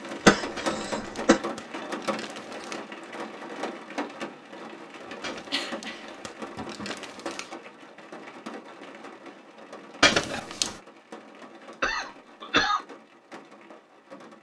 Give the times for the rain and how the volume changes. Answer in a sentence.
You can hear the rain from 0.0 to 14.3 s, getting quieter.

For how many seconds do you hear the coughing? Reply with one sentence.
The coughing can be heard for 4 seconds in total.